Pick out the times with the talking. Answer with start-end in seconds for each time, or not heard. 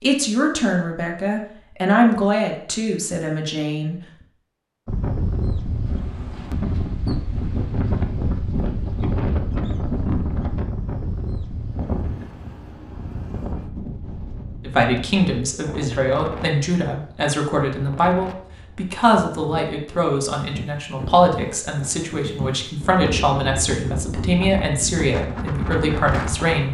0.0-4.0, 14.7-26.6.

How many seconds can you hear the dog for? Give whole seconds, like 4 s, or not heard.
not heard.